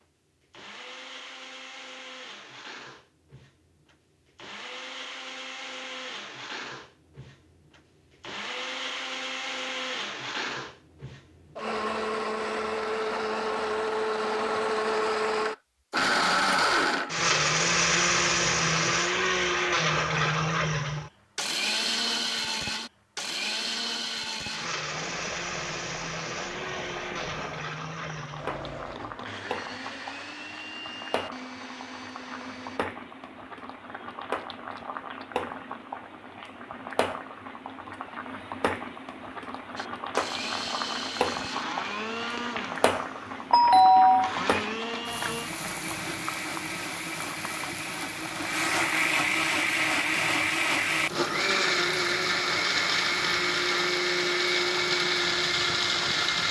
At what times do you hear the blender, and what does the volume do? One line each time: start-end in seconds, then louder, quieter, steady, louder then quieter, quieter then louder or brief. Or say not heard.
0.0-32.8 louder then quieter
39.8-56.4 louder.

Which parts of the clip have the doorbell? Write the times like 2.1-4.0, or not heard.
43.5-44.4.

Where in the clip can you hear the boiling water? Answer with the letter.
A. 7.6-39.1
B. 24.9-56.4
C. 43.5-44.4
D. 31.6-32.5
B.